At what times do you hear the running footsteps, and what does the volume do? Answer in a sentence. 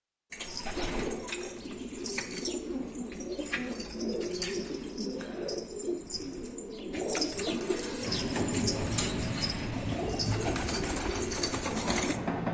The running footsteps can't be heard in this clip.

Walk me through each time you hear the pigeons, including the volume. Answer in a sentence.
You can hear the pigeons from 0.3 to 12.2 s, at a steady volume.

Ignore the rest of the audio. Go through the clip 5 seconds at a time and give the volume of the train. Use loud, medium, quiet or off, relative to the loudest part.
off, loud, loud.